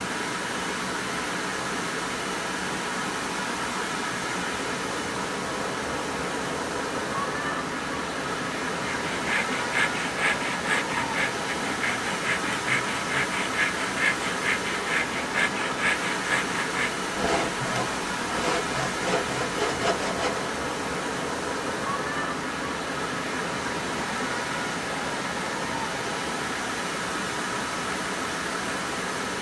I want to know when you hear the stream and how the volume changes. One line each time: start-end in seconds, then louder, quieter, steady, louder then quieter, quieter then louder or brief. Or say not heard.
0.0-29.3 steady.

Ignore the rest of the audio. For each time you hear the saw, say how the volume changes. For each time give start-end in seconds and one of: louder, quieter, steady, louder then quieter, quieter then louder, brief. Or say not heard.
8.8-20.5 steady.